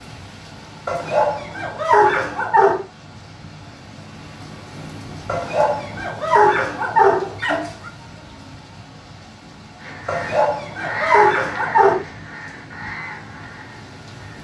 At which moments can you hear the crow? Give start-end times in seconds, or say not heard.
9.8-14.3.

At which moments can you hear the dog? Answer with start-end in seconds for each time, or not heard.
0.8-2.9, 5.2-7.9, 10.1-12.0.